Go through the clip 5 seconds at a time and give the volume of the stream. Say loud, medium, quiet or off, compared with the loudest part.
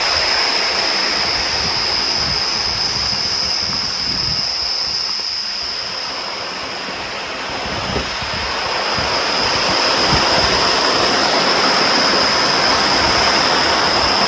medium, medium, loud.